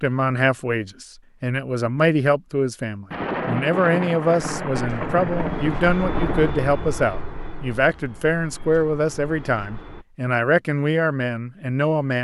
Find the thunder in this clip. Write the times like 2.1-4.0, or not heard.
3.1-6.5.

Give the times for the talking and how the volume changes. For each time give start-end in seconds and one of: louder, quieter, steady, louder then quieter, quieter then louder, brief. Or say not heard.
0.0-12.1 steady.